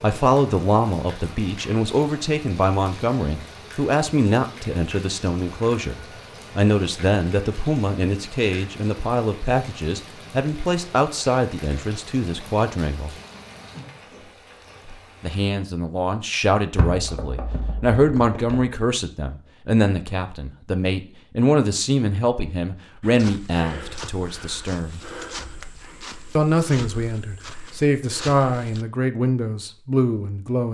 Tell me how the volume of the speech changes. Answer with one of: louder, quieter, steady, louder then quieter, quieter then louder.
steady.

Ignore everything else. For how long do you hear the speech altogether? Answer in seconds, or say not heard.
27 s.